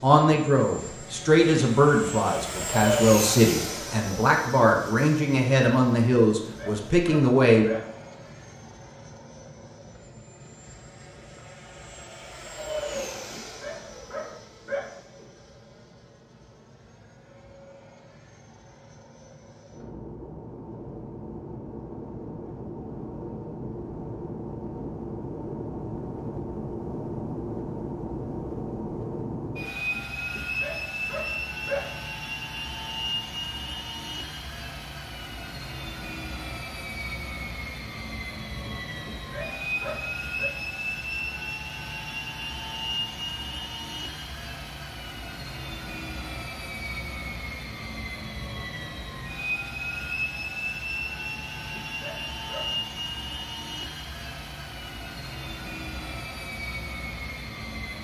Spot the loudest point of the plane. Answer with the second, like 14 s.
3 s.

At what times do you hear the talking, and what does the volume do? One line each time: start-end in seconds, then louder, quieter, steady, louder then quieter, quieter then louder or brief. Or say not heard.
0.0-7.7 steady.